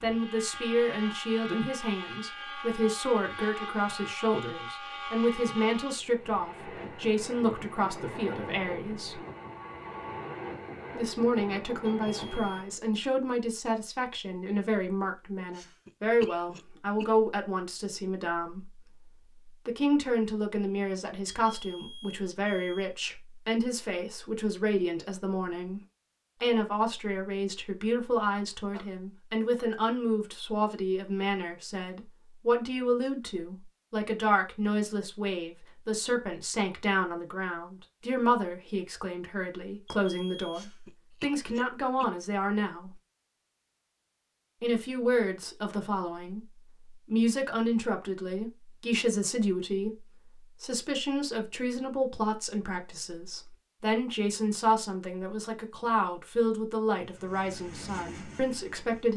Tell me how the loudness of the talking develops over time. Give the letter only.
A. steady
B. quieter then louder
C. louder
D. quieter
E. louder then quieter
A.